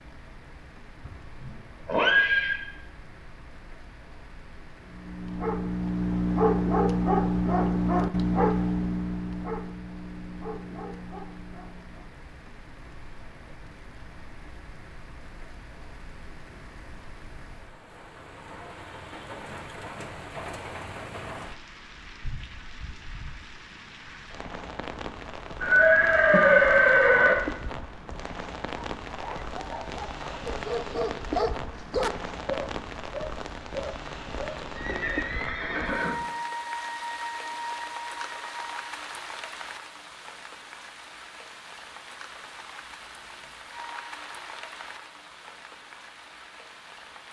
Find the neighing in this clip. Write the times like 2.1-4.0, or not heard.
1.1-2.6, 25.6-27.4, 34.8-36.1.